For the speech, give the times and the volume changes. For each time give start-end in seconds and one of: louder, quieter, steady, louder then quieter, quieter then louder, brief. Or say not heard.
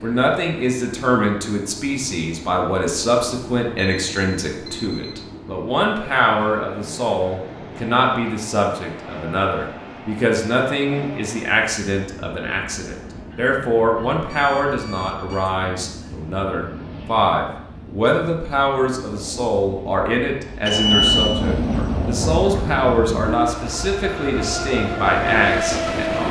0.0-26.2 steady.